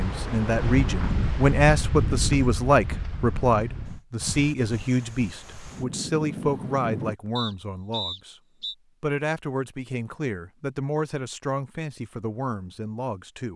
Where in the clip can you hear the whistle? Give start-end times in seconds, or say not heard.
7.3-8.8.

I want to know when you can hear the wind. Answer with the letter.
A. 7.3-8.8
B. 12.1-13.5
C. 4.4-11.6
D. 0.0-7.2
D.